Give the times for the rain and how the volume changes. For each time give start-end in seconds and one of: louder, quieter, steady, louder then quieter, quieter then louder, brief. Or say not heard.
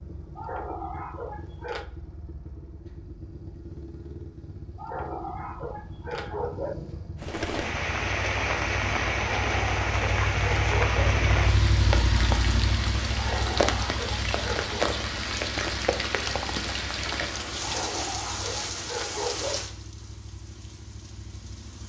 7.2-21.8 quieter.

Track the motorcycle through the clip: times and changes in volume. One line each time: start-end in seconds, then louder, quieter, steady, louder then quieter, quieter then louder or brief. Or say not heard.
0.0-21.8 louder then quieter.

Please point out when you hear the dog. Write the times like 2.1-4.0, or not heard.
0.3-1.9, 4.8-6.8, 9.2-11.1, 13.2-14.8, 17.6-19.6.